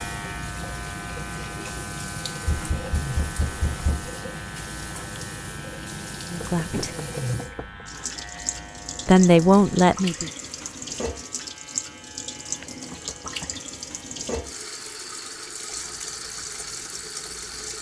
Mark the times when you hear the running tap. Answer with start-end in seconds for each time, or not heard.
0.0-17.7.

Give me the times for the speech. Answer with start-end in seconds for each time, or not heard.
6.2-6.9, 9.1-10.3.